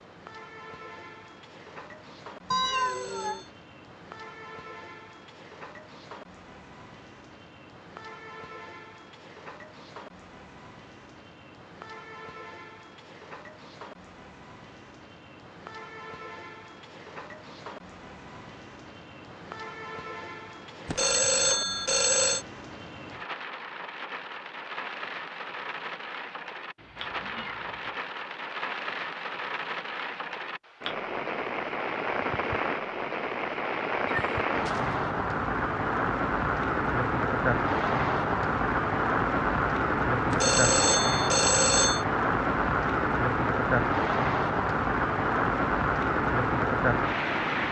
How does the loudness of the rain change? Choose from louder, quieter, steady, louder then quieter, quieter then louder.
louder.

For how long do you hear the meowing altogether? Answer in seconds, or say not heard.
3 s.